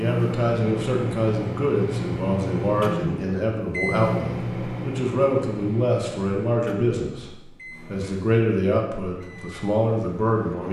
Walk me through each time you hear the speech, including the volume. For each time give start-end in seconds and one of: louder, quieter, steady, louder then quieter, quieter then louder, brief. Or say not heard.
0.0-10.6 steady.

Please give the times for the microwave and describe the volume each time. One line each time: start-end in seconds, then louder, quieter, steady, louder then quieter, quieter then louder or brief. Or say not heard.
0.0-10.6 quieter.